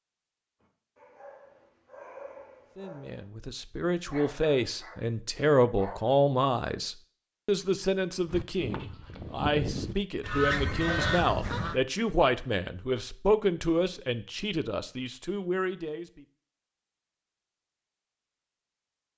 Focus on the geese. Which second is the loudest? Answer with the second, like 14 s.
11 s.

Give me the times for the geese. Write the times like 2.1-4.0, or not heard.
8.2-11.8.